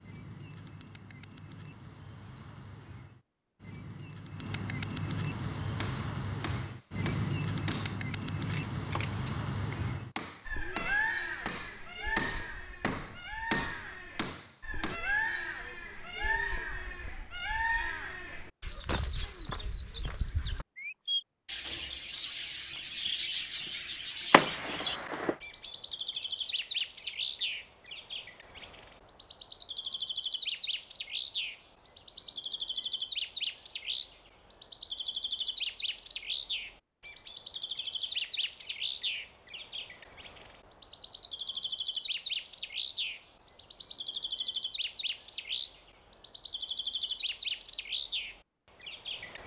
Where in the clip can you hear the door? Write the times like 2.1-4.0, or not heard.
24.3-25.4.